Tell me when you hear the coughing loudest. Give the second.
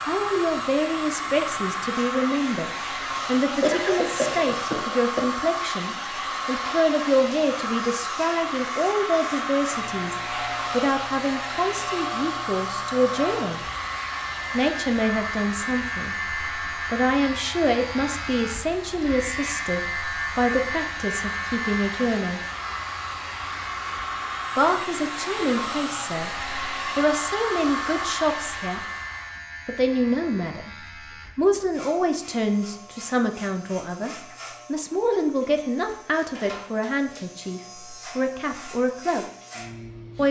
4 s.